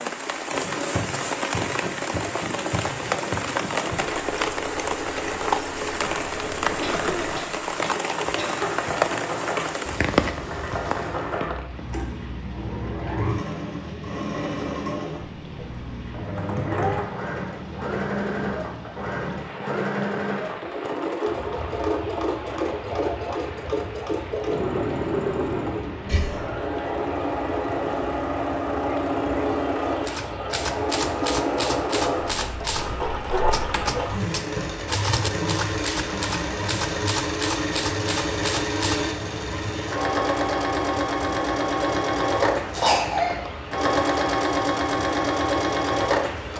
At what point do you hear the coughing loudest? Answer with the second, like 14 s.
43 s.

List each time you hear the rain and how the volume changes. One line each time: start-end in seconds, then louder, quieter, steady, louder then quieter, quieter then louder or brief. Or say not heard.
0.0-46.5 quieter.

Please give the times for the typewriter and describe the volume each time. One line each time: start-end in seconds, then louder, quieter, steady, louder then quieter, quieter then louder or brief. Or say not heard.
30.0-39.1 steady.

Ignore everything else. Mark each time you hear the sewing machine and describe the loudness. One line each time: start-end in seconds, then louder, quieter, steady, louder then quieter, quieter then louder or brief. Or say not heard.
0.0-46.5 louder.